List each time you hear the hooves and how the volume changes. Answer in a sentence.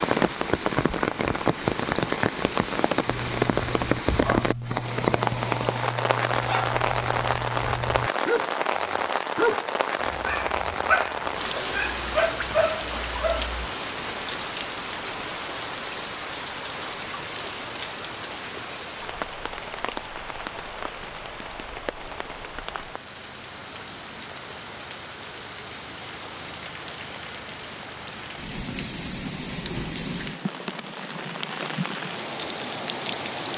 The hooves can't be heard in this clip.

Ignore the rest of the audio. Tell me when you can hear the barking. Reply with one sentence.
You can hear the barking from 3.0 to 13.6 s.